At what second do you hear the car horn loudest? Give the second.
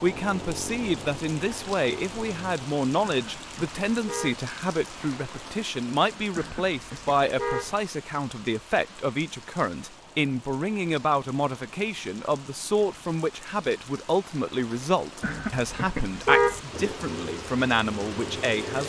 16 s.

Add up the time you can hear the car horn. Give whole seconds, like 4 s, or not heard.
4 s.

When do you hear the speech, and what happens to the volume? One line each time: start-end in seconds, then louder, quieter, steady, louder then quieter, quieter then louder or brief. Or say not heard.
0.0-18.8 steady.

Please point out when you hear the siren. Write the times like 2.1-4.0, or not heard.
not heard.